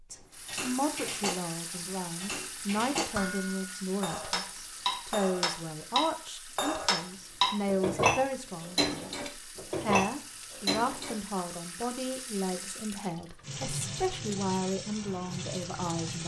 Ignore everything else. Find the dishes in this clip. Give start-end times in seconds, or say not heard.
0.5-11.2.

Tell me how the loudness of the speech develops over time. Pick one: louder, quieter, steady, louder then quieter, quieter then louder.
steady.